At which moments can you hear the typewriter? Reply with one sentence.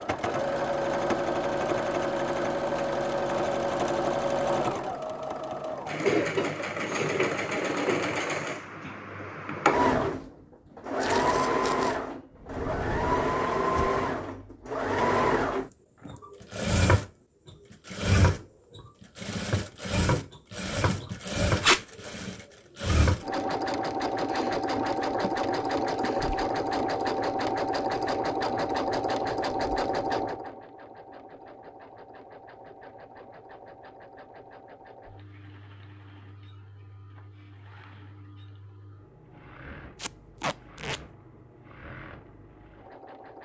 The typewriter can't be heard in this clip.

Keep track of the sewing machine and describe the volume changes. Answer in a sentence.
The volume of the sewing machine goes down.